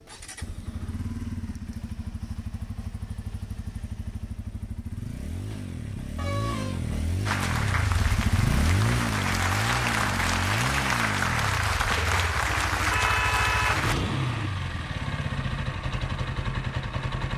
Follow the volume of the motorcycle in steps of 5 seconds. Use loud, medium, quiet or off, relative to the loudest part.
medium, loud, loud, loud.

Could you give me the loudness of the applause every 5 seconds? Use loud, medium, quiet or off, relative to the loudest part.
off, loud, loud, off.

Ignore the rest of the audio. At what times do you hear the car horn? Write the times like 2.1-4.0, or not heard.
6.2-6.8, 12.4-14.5.